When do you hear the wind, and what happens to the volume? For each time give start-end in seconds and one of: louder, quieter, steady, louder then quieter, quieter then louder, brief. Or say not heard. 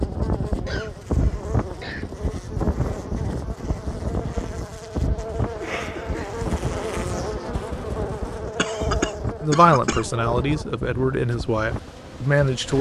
0.0-12.7 quieter.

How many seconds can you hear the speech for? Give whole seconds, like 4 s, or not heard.
3 s.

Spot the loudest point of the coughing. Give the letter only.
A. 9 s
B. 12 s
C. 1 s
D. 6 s
A.